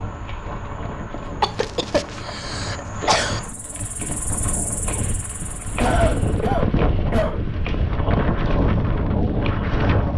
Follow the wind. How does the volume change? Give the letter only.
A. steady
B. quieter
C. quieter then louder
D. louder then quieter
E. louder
E.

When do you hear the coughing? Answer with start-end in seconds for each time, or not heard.
1.4-3.4, 5.8-7.4.